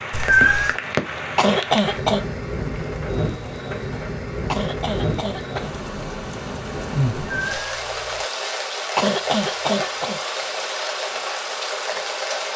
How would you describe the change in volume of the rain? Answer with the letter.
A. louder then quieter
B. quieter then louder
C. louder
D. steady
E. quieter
D.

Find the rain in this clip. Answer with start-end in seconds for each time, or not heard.
0.0-12.5.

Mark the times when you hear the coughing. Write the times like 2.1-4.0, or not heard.
1.4-2.2, 4.5-5.7, 8.9-10.2.